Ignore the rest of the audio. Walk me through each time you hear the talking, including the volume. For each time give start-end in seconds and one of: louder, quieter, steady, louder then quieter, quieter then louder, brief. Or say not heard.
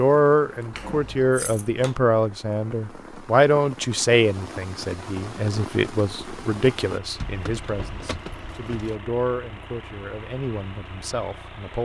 0.0-11.8 quieter.